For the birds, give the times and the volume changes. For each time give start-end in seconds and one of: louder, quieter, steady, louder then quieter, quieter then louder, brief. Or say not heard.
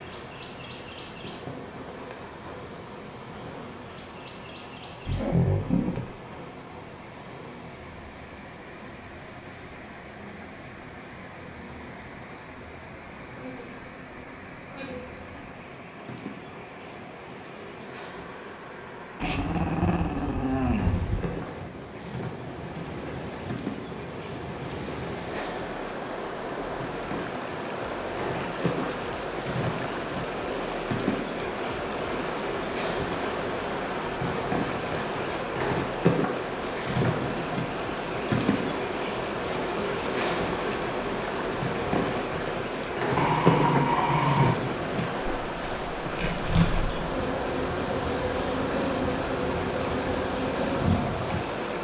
not heard.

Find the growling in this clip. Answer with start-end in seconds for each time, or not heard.
5.0-6.1, 19.2-21.2, 43.1-44.6.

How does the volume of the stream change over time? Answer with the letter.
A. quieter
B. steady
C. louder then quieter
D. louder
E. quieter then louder
D.